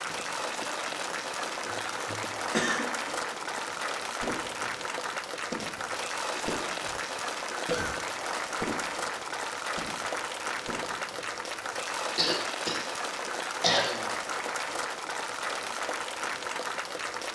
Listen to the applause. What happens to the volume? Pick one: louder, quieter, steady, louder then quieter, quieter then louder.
steady.